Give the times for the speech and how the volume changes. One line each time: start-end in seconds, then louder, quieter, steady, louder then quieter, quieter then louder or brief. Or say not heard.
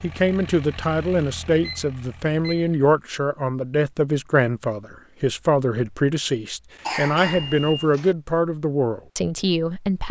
0.0-10.0 steady.